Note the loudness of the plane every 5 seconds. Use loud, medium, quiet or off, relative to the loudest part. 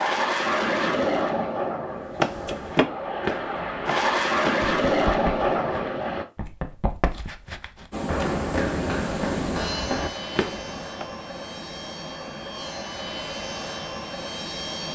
loud, loud, medium.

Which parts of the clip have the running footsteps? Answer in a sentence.
The running footsteps can be heard from 2.1 to 11.1 s.